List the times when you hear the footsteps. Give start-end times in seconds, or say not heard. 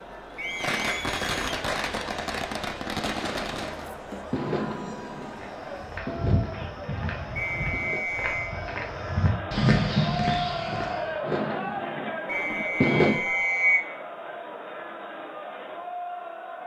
5.3-11.2.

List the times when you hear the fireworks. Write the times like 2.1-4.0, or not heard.
0.6-8.1, 11.2-13.2.